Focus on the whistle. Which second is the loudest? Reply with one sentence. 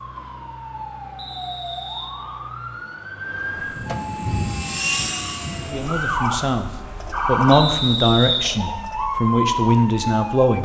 The loudest moment of the whistle is at 8 seconds.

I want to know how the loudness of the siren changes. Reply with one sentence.
The loudness of the siren goes up.